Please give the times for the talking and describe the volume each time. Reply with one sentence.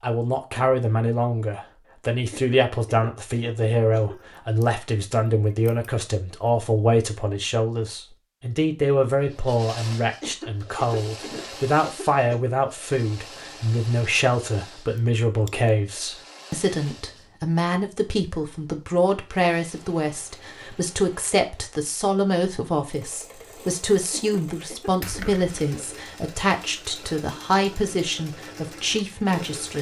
The talking can be heard from 0.0 to 29.7 s, at a steady volume.